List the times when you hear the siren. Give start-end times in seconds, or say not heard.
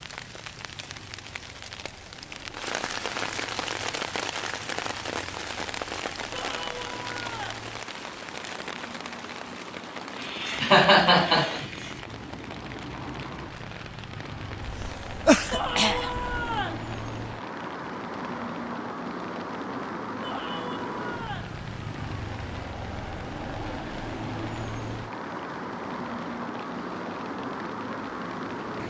not heard.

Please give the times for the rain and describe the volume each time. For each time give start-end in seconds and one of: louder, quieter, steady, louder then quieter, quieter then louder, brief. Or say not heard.
0.0-28.8 quieter.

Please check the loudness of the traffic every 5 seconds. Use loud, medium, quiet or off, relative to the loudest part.
quiet, medium, medium, loud, loud, loud.